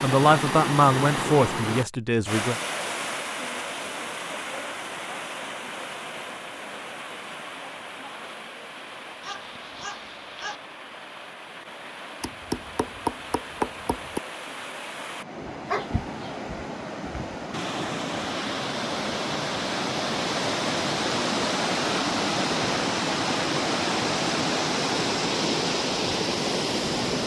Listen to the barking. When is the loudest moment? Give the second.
16 s.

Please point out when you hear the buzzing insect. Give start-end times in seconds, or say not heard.
not heard.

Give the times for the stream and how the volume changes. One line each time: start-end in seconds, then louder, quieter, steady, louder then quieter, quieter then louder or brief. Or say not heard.
0.0-27.2 quieter then louder.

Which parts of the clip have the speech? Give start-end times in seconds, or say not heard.
0.0-2.5.